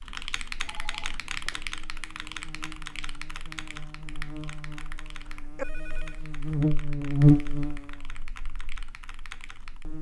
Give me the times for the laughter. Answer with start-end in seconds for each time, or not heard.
not heard.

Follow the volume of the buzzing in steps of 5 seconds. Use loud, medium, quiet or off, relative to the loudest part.
quiet, loud.